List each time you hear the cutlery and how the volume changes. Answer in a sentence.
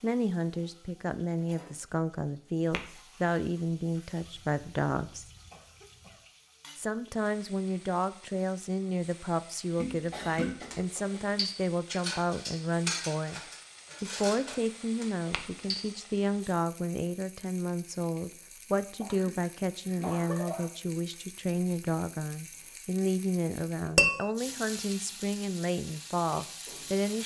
You can hear the cutlery from 10.7 to 15.8 s, getting quieter.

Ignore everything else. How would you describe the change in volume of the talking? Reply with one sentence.
The volume of the talking stays about the same.